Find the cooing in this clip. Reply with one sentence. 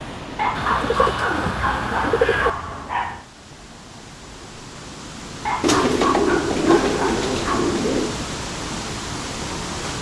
You can hear the cooing from 0.6 to 2.5 s and from 5.6 to 8.2 s.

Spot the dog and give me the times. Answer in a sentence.
You can hear the dog from 0.3 to 3.2 s and from 5.5 to 7.8 s.